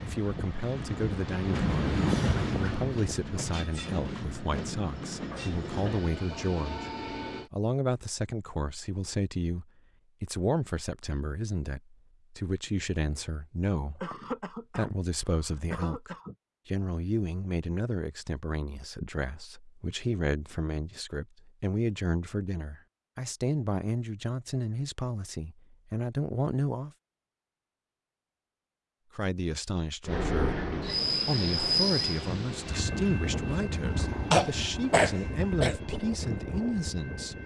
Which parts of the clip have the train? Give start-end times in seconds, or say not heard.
0.0-7.5, 30.1-37.4.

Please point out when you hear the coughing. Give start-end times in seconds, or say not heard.
5.3-6.0, 14.0-16.4, 34.3-35.8.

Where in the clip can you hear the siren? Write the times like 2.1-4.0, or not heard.
not heard.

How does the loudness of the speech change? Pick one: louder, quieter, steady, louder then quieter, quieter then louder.
steady.